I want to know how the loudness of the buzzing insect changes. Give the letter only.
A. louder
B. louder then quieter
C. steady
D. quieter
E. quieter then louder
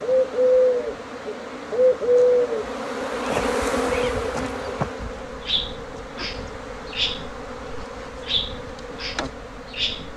B.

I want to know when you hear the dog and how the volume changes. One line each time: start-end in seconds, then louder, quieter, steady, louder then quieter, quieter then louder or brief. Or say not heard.
not heard.